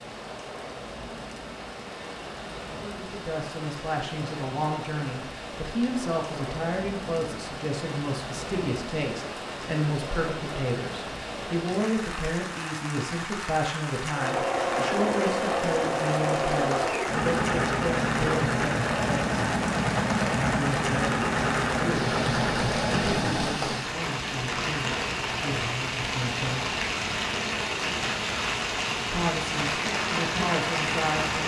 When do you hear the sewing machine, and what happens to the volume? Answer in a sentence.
The sewing machine can be heard from 14.1 to 23.6 s, at a steady volume.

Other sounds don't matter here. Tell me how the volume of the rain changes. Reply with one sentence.
The loudness of the rain goes up.